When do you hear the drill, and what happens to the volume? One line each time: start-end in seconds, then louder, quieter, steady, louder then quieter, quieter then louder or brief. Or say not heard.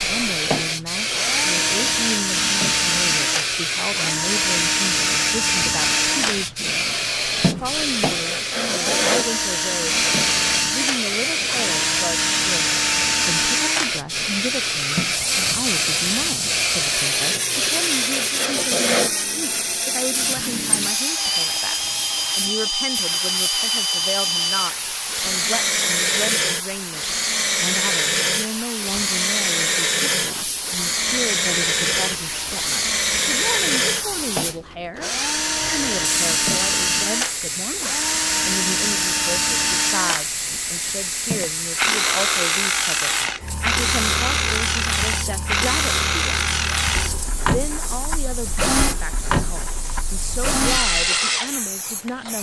0.0-52.3 steady.